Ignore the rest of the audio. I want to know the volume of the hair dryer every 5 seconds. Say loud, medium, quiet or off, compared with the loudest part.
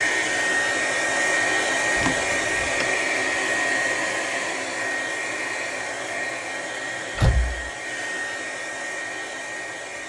loud, medium.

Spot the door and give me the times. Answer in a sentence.
You can hear the door from 1.9 to 2.9 s and from 7.2 to 7.7 s.